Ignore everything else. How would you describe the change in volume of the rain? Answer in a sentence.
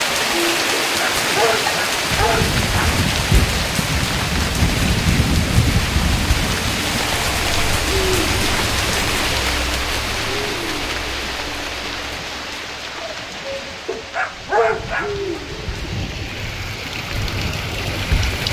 The loudness of the rain goes down.